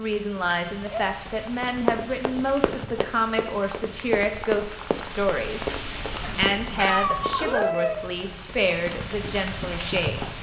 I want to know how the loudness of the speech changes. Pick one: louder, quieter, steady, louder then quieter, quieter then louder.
steady.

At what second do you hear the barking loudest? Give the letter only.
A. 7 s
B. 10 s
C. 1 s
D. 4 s
A.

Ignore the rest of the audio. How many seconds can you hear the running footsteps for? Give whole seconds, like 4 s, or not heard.
6 s.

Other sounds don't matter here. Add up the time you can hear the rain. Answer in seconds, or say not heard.
10 s.